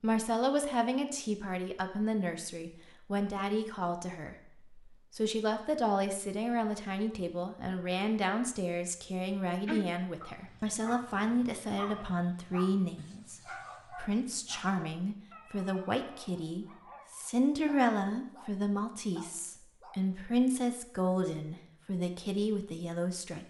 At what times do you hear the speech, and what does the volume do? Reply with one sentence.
You can hear the speech from 0.0 to 23.4 s, at a steady volume.